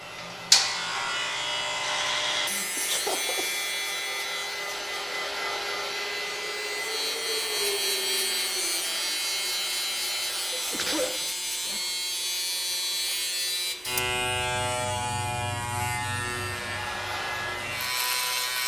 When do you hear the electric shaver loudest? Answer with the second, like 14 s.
1 s.